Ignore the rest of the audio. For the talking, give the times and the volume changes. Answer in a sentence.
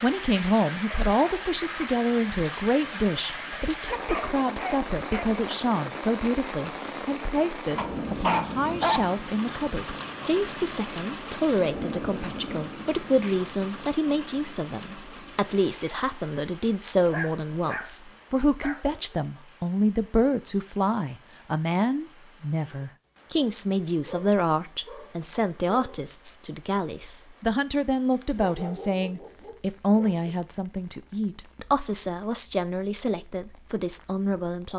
The talking can be heard from 0.0 to 34.7 s, at a steady volume.